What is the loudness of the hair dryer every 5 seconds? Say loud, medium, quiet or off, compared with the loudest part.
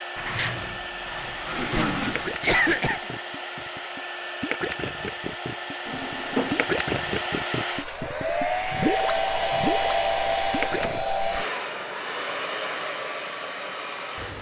medium, loud, loud.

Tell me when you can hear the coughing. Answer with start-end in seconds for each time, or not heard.
1.6-3.0.